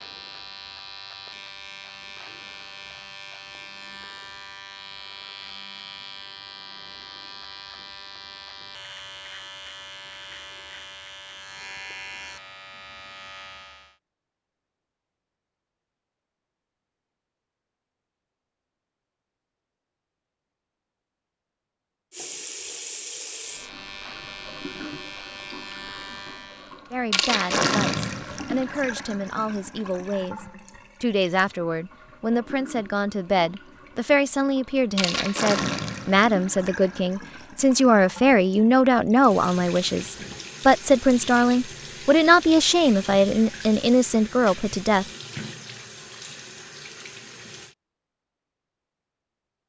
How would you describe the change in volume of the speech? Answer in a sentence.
The loudness of the speech goes up.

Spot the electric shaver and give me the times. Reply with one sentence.
You can hear the electric shaver from 0.0 to 13.9 s and from 23.3 to 26.8 s.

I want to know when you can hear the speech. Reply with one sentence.
You can hear the speech from 26.9 to 45.0 s.